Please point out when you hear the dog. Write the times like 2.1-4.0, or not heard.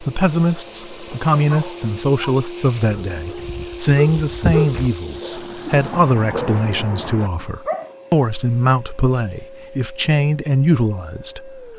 1.3-7.9.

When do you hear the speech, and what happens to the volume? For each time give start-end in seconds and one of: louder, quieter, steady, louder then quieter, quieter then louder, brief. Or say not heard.
0.0-11.7 steady.